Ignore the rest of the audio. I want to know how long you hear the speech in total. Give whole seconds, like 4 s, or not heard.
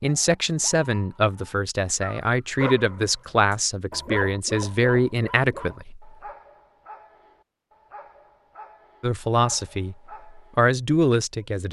9 s.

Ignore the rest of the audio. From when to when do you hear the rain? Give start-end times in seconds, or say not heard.
not heard.